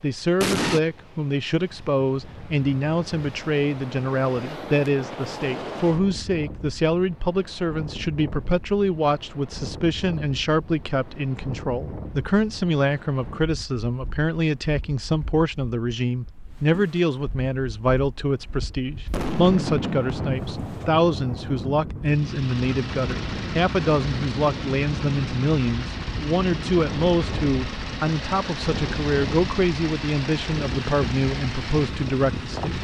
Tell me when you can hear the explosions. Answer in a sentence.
The explosions can be heard from 0.4 to 0.8 s and from 19.1 to 21.6 s.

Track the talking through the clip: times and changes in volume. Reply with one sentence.
The talking can be heard from 0.0 to 32.7 s, at a steady volume.